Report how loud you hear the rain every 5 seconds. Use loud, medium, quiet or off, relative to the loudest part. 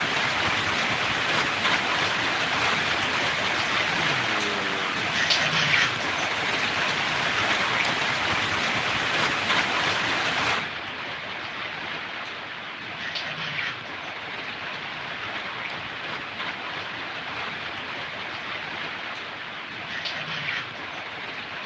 loud, loud, medium, medium, medium.